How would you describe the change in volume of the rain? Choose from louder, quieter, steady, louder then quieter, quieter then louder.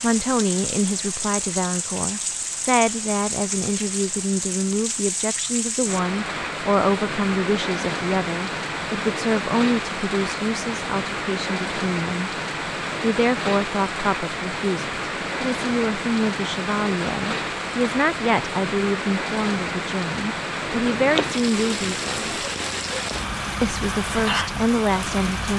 steady.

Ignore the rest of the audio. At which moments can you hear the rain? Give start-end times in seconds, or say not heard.
0.0-25.5.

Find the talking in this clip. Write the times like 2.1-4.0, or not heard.
0.0-12.3, 13.0-22.3, 23.6-25.5.